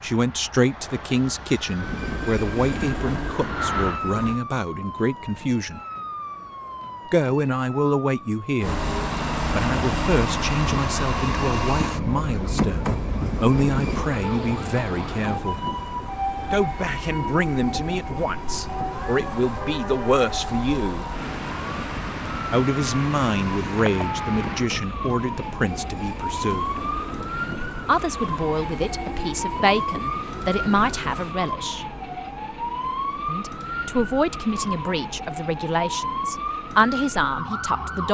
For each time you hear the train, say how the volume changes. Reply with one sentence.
You can hear the train briefly from 1.8 to 4.4 s; and from 8.6 to 31.4 s, getting quieter.